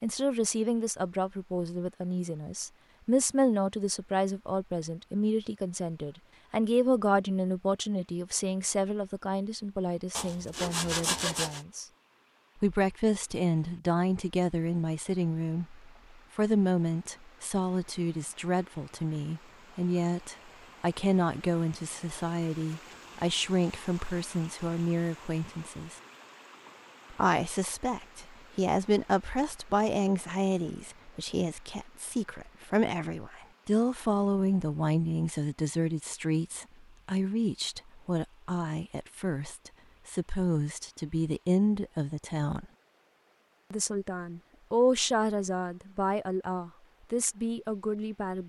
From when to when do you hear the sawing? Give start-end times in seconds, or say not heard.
10.1-11.7.